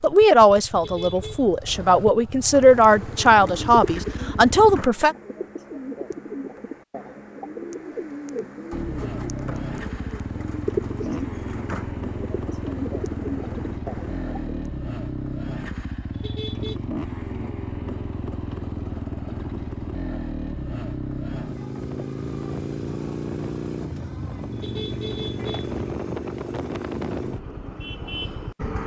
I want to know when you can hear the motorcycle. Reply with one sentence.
The motorcycle can be heard from 0.0 to 4.8 s and from 8.7 to 28.8 s.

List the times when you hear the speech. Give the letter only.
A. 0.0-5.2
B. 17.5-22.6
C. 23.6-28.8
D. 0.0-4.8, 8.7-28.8
A.